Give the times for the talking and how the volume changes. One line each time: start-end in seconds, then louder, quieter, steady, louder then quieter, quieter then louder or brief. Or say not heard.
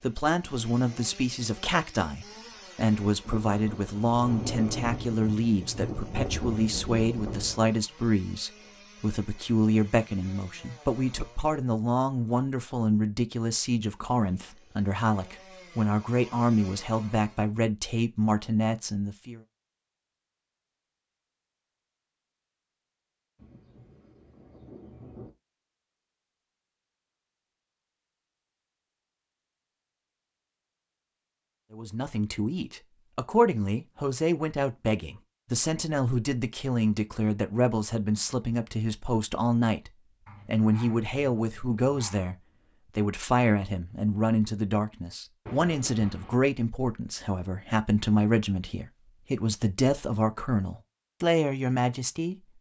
0.0-19.4 steady
31.7-52.5 steady.